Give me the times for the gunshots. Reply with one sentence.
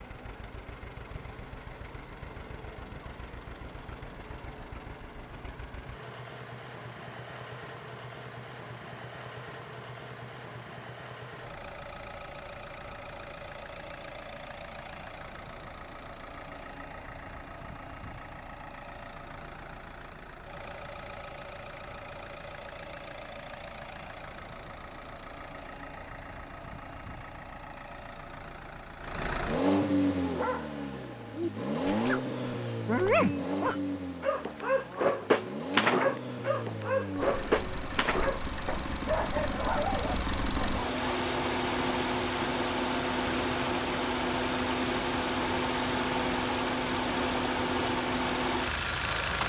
You can't hear the gunshots here.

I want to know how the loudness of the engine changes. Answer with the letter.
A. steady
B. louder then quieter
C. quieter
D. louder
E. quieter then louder
D.